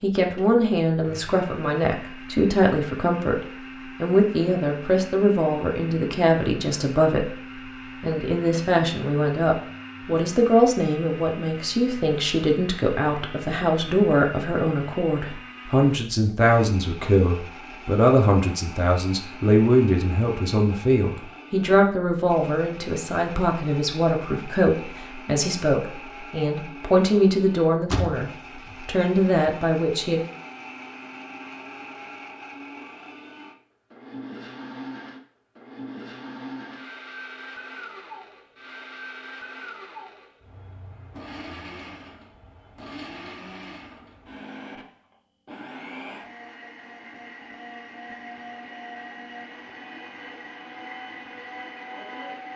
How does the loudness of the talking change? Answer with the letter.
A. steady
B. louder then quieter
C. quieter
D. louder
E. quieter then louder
A.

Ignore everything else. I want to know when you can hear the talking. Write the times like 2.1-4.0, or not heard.
0.0-7.3, 8.0-30.2.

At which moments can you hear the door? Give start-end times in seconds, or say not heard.
27.9-28.8.